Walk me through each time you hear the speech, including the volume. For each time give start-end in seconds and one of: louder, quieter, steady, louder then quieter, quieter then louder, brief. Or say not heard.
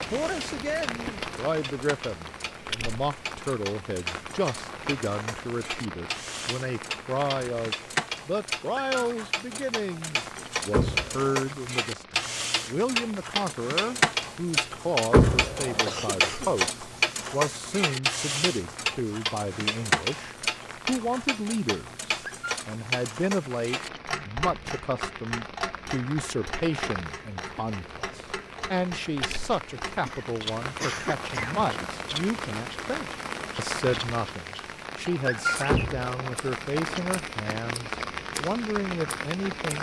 0.0-39.7 steady.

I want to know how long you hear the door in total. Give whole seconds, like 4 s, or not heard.
2 s.